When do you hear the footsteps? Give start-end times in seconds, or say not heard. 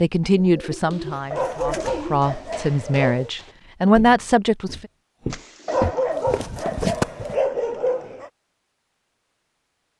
0.8-7.3.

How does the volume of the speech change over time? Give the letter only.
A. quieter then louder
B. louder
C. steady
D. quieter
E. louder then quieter
A.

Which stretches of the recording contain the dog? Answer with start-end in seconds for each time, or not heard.
1.3-3.3, 5.7-8.3.